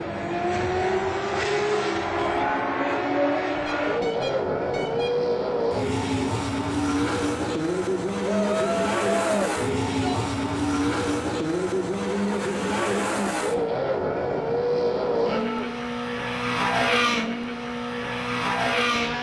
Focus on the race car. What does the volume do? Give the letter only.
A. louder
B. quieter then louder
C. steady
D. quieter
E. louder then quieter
C.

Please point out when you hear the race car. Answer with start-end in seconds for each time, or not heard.
0.0-19.1.